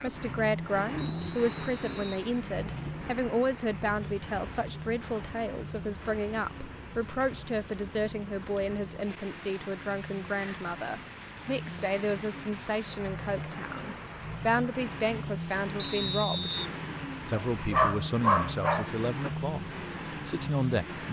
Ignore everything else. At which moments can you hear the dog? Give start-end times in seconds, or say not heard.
17.5-19.4.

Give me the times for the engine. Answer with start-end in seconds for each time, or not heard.
0.0-21.0.